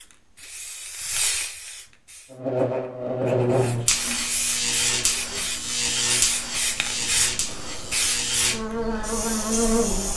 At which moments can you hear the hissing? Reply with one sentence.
The hissing can be heard from 0.0 to 2.4 s and from 3.5 to 10.1 s.